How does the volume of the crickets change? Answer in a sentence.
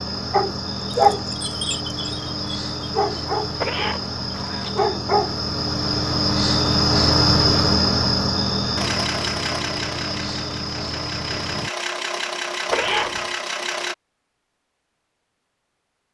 The volume of the crickets goes up, then down.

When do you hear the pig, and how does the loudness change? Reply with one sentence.
The pig can't be heard in this clip.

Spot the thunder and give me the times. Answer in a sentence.
The thunder can't be heard in this clip.